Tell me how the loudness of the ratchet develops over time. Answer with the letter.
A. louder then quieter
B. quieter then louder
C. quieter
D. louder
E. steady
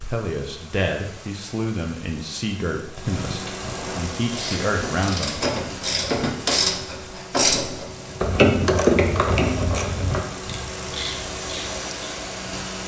A.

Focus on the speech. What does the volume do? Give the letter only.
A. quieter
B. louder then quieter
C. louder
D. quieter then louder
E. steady
D.